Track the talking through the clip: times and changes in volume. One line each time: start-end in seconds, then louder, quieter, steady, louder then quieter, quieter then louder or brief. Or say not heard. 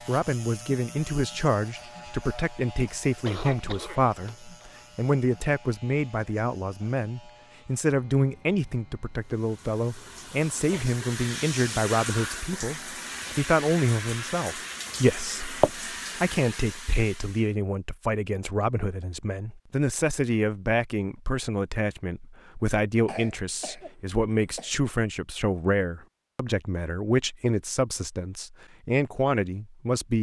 0.1-30.1 steady.